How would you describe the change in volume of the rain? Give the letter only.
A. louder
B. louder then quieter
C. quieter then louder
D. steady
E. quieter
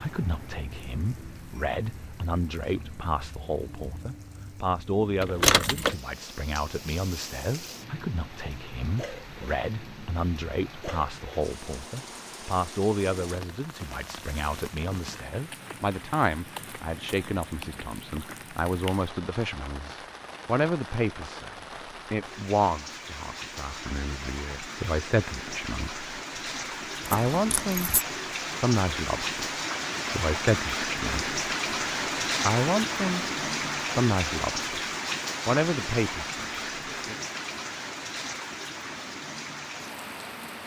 A.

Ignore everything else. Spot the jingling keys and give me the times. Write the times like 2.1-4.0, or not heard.
5.2-6.0, 27.0-28.1.